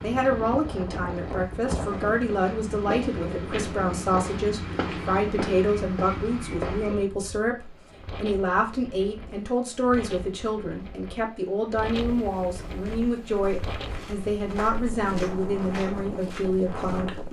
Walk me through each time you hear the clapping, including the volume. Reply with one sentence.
You can't hear the clapping here.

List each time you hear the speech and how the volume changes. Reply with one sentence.
The speech can be heard from 0.0 to 17.2 s, at a steady volume.